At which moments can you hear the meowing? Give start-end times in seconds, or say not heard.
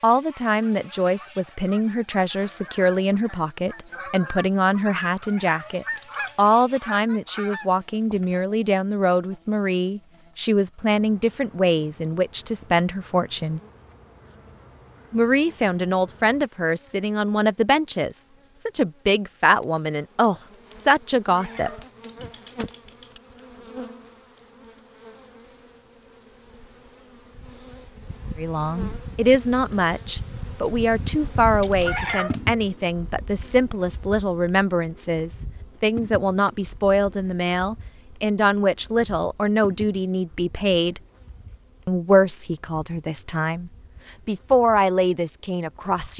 5.2-6.5, 21.2-23.2, 31.8-32.4.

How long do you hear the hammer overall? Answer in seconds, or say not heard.
not heard.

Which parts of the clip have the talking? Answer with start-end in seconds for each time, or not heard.
0.0-13.6, 15.1-21.7, 28.4-41.0, 41.9-46.1.